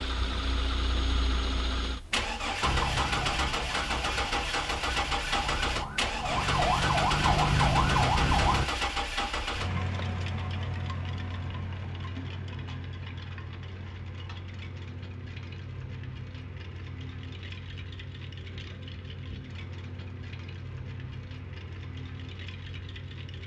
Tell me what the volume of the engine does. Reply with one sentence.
The loudness of the engine goes down.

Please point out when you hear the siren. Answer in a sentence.
The siren can be heard from 2.6 to 8.7 s.